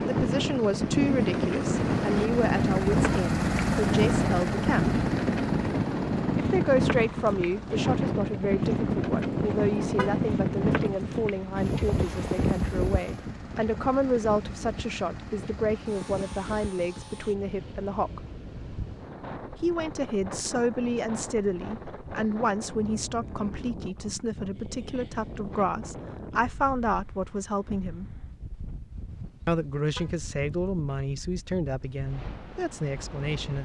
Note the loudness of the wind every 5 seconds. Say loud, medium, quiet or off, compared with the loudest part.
loud, loud, loud, quiet, quiet, quiet, quiet.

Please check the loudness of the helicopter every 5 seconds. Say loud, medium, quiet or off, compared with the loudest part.
loud, medium, quiet, quiet, off, off, off.